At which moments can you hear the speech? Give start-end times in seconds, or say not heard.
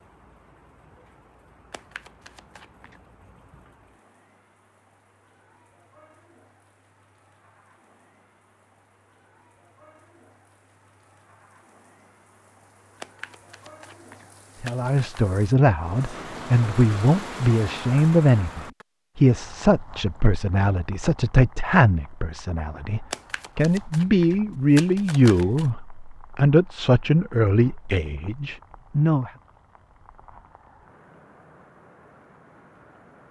14.6-29.3.